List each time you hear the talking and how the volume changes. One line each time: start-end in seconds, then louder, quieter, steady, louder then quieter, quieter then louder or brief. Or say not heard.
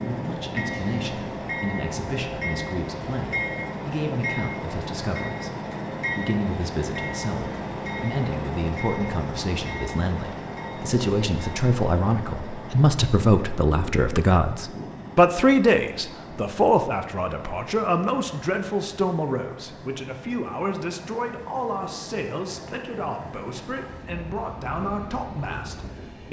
0.0-26.2 louder then quieter.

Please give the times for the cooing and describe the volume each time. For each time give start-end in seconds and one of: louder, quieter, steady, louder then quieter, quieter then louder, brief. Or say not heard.
not heard.